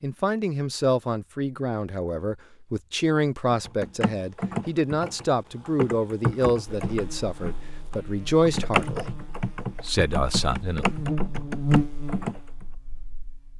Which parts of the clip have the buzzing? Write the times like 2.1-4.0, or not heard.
6.8-13.5.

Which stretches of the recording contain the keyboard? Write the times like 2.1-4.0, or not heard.
3.5-12.7.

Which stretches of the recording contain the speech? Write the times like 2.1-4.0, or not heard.
0.0-10.8.